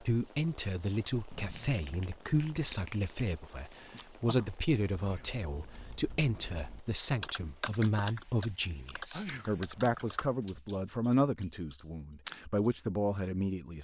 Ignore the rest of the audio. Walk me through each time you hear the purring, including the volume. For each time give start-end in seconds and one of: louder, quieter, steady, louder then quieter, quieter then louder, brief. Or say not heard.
not heard.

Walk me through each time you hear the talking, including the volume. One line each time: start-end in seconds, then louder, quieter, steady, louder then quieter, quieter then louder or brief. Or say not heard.
0.0-13.8 steady.